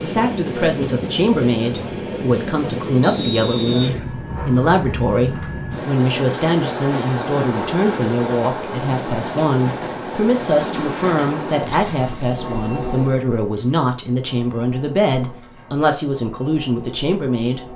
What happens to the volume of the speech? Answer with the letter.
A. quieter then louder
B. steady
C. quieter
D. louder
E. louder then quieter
B.